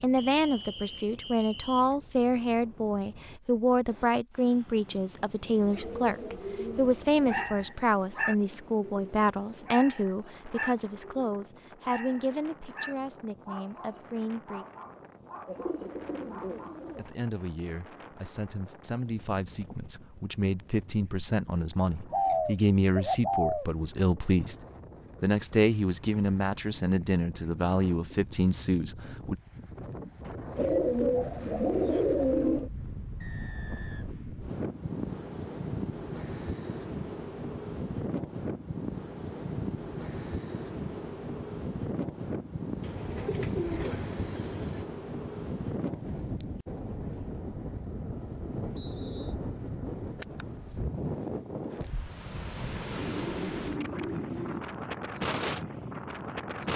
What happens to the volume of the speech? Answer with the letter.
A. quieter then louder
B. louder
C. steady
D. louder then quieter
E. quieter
A.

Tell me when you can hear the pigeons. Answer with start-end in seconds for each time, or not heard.
5.5-7.5, 15.4-17.1, 22.1-23.6, 30.6-32.7, 42.8-44.9, 53.0-54.6.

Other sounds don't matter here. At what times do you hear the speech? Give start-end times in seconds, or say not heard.
0.0-14.7, 16.9-24.6, 25.2-29.4.